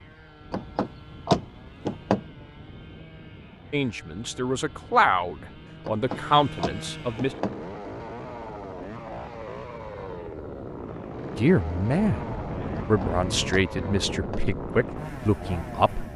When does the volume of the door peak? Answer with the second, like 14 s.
1 s.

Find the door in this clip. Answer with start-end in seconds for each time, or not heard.
0.5-2.2, 5.8-7.5, 12.8-14.4.